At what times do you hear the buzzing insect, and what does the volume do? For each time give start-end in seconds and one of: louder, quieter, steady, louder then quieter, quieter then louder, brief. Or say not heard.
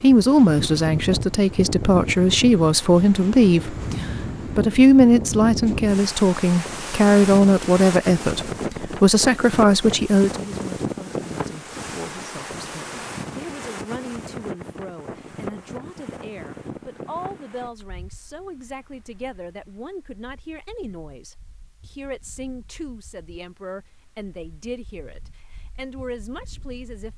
not heard.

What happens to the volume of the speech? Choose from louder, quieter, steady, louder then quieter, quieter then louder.
quieter.